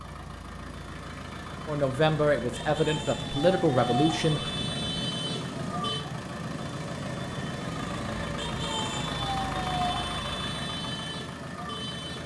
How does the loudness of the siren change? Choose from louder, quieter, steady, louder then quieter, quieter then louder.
louder.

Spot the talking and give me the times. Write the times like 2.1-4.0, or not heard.
1.6-4.5.